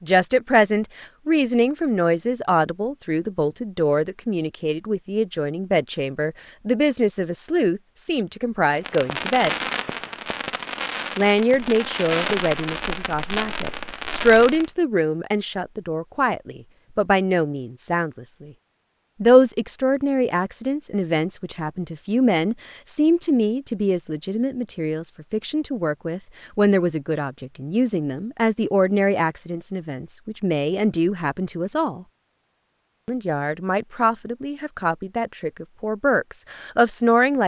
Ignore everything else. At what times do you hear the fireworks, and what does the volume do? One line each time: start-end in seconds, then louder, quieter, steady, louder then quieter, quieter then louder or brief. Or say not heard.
8.7-14.7 steady.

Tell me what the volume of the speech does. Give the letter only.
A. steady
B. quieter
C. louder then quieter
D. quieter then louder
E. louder
A.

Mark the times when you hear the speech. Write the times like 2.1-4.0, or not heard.
0.0-9.6, 11.2-18.5, 19.2-32.0, 33.0-37.4.